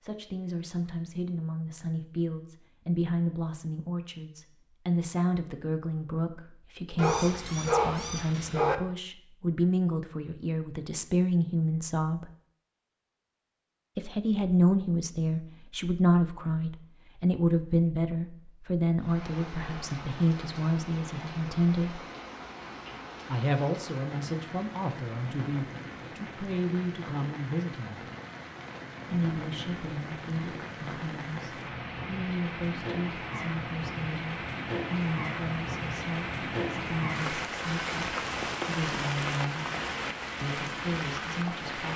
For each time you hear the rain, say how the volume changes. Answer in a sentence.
The rain can be heard from 18.9 to 41.9 s, getting louder.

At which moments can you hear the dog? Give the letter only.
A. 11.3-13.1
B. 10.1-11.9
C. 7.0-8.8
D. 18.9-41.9
C.